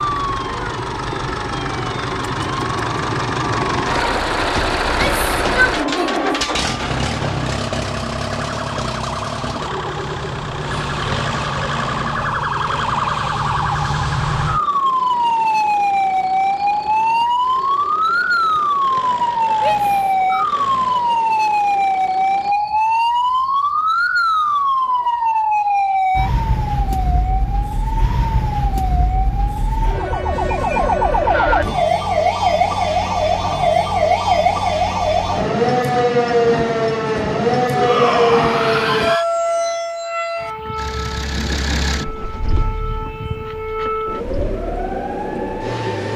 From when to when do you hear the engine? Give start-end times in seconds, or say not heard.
0.0-22.6, 40.8-46.1.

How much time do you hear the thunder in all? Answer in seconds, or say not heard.
3 s.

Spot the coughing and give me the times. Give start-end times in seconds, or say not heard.
not heard.